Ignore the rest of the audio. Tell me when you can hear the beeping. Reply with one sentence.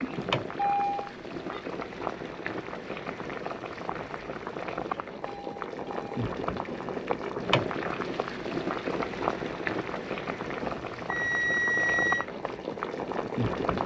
The beeping can be heard from 0.2 to 1.6 s, from 5.2 to 6.1 s and from 10.6 to 12.2 s.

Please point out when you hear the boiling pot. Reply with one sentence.
You can hear the boiling pot from 0.0 to 13.8 s.